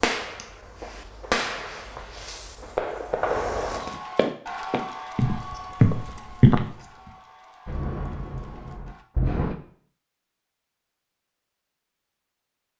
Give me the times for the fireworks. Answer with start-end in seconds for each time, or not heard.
0.0-3.8, 7.7-9.6.